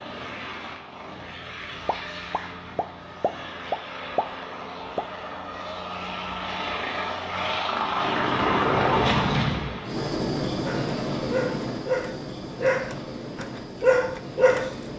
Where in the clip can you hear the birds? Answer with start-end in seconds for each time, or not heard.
not heard.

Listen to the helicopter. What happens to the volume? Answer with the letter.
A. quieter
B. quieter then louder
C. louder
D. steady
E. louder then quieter
E.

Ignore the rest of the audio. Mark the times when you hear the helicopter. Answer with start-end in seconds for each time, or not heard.
0.0-14.9.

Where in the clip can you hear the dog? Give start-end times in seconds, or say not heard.
10.7-14.8.